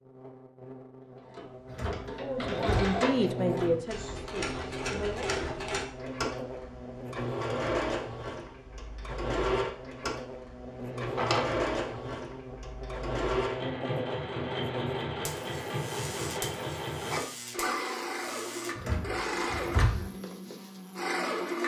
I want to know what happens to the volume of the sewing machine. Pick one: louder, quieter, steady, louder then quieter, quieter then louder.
steady.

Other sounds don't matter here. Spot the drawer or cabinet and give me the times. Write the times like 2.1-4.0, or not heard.
1.6-3.0, 11.0-11.9, 18.8-20.1.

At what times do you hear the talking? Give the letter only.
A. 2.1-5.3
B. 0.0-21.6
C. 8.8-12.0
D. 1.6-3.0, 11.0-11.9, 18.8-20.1
A.